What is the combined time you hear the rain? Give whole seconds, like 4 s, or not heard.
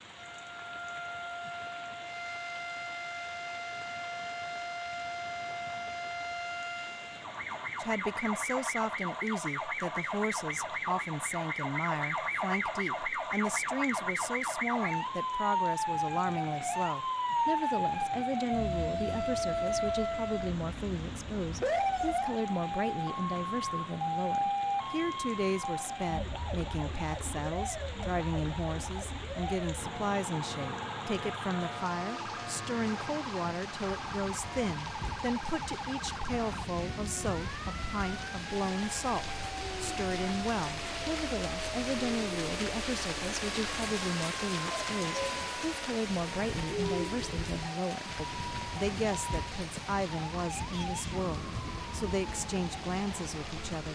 54 s.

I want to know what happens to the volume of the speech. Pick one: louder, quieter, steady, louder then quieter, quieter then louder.
steady.